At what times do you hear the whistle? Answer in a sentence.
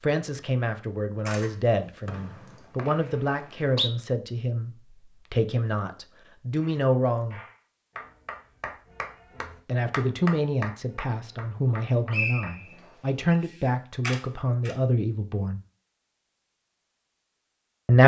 You can hear the whistle from 2.0 to 3.9 s and from 11.7 to 13.4 s.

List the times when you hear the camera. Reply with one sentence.
You can hear the camera from 1.2 to 2.6 s and from 13.4 to 14.8 s.